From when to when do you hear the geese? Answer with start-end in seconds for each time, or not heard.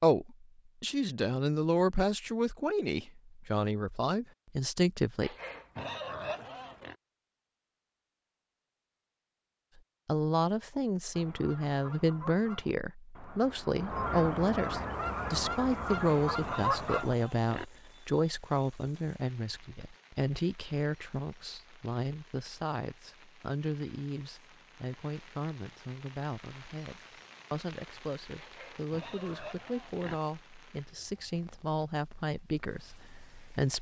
11.1-17.1.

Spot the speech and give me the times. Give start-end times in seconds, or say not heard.
0.0-5.3, 10.1-33.7.